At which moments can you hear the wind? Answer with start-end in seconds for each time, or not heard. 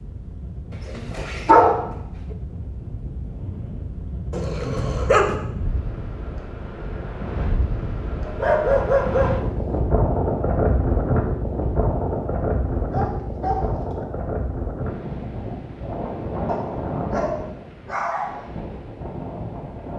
0.0-19.9.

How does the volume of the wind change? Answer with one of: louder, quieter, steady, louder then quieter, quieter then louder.
louder then quieter.